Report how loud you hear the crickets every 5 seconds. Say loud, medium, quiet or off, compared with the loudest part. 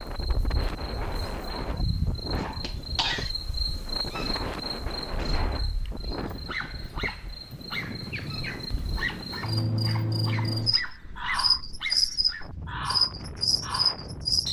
medium, medium, loud.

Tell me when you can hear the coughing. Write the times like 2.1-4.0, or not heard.
2.6-3.3.